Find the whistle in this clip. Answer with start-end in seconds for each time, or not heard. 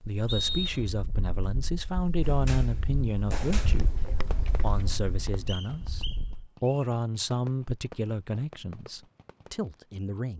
0.2-0.9, 5.5-6.8.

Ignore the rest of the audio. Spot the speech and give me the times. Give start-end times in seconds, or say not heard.
0.0-10.3.